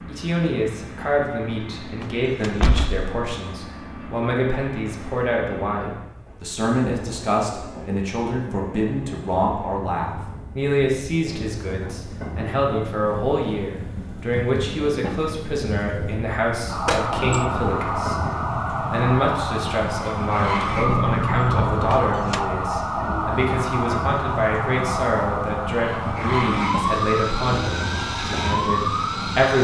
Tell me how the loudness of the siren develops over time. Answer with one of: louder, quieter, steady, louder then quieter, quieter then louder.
steady.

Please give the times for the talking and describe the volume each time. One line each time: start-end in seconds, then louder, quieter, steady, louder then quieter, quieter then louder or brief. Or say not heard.
0.1-29.6 steady.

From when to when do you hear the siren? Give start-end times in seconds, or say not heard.
16.6-29.6.